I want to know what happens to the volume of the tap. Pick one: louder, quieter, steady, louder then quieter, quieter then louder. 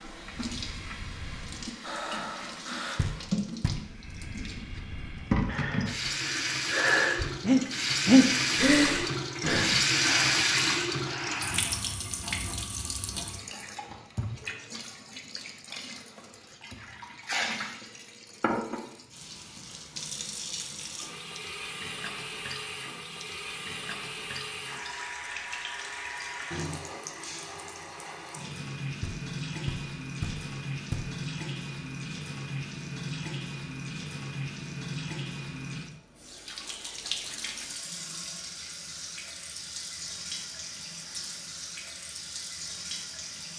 quieter.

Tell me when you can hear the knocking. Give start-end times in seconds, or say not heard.
3.0-3.9, 29.0-31.2.